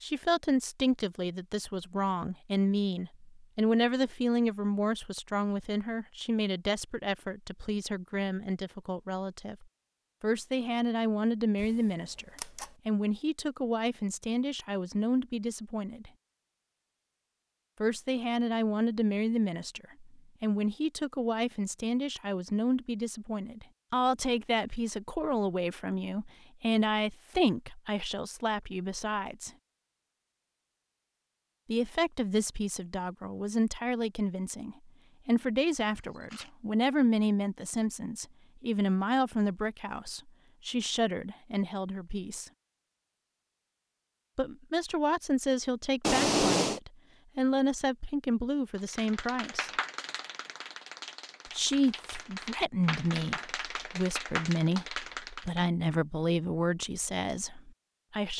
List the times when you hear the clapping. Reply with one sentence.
The clapping can be heard from 48.8 to 55.6 s.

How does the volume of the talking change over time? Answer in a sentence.
The volume of the talking stays about the same.